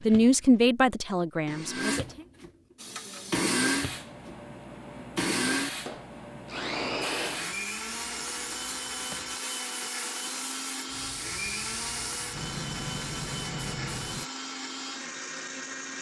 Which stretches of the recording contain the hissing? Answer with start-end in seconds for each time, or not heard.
2.8-14.2.